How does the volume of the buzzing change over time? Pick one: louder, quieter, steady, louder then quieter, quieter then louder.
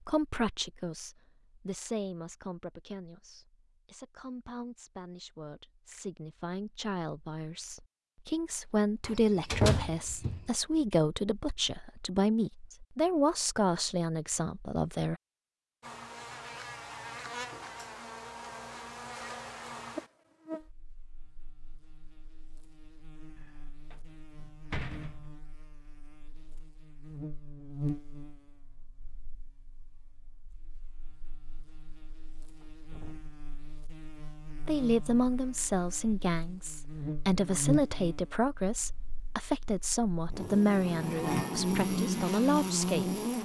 quieter then louder.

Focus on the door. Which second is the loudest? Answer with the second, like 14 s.
10 s.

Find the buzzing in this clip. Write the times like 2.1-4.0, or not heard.
15.8-43.3.